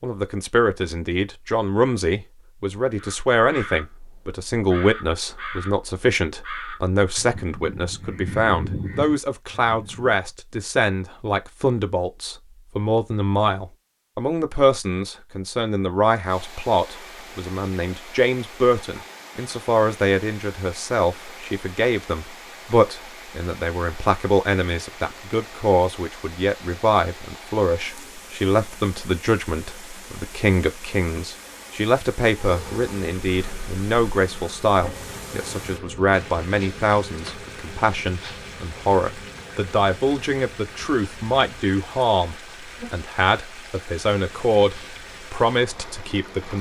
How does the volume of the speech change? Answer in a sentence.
The volume of the speech stays about the same.